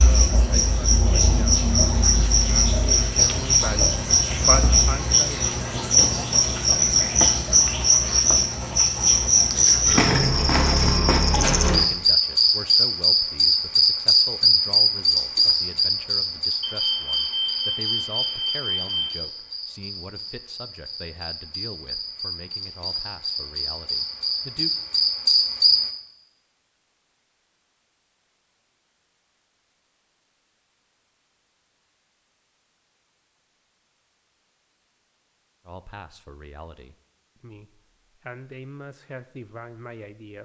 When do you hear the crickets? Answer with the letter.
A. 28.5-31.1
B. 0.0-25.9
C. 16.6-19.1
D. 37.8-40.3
B.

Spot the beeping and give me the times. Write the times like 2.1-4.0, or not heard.
16.6-19.1.